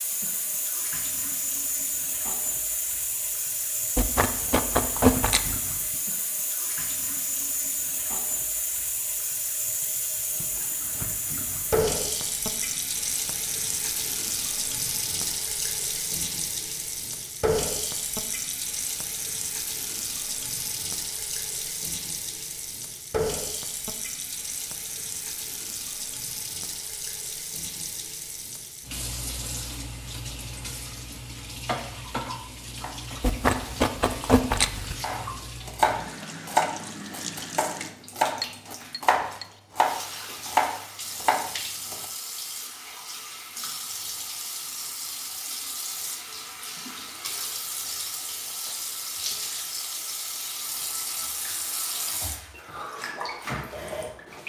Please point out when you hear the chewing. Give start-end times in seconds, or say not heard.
4.0-5.6, 33.2-35.0.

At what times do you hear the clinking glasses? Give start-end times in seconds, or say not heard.
38.4-39.5.